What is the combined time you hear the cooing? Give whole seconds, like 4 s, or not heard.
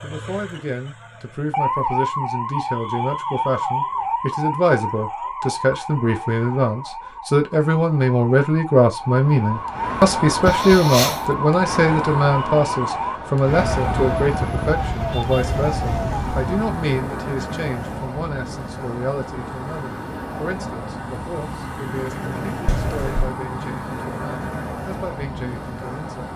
not heard.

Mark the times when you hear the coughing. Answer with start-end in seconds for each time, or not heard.
10.4-11.3, 22.6-23.4.